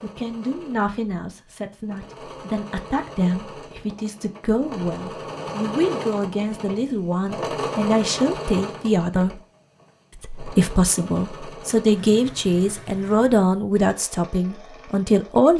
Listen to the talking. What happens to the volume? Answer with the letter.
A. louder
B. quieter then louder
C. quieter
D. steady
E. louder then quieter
A.